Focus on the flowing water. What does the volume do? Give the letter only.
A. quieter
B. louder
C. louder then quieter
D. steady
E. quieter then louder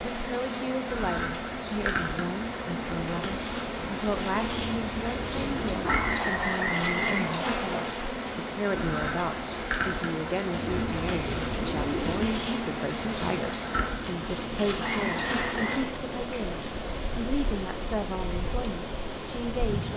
D.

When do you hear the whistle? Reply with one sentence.
The whistle can be heard from 5.8 to 7.8 s and from 14.8 to 15.8 s.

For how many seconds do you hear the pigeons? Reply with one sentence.
The pigeons can be heard for 4 seconds in total.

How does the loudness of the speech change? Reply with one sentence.
The volume of the speech stays about the same.